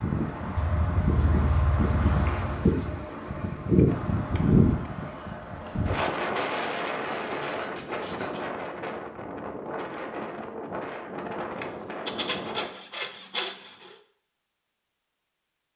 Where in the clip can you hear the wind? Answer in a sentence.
The wind can be heard from 0.0 to 12.7 s.